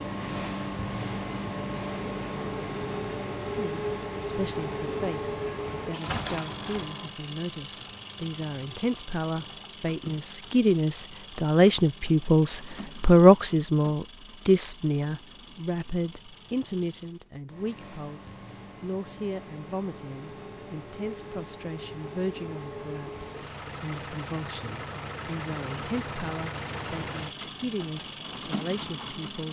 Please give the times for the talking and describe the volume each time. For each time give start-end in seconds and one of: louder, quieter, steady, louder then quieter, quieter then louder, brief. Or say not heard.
3.4-29.4 louder then quieter.